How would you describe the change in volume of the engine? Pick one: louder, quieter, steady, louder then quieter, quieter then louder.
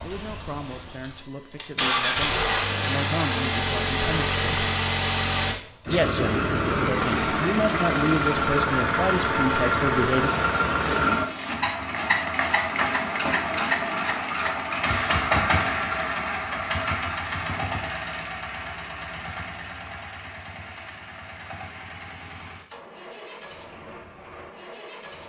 quieter.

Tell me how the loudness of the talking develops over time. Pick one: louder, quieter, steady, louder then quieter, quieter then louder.
louder.